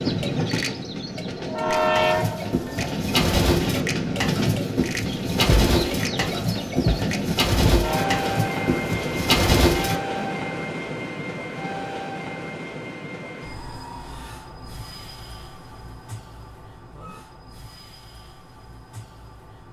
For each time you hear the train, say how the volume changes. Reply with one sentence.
You can hear the train from 0.0 to 19.6 s, getting quieter.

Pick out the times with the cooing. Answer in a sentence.
The cooing can be heard from 1.8 to 10.3 s.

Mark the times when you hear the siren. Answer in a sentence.
The siren can't be heard in this clip.